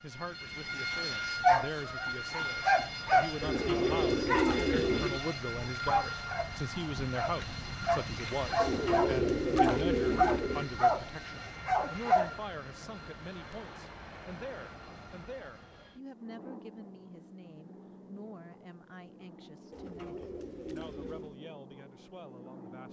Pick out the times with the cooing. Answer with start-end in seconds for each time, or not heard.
3.4-5.2, 8.6-10.7, 19.7-21.4.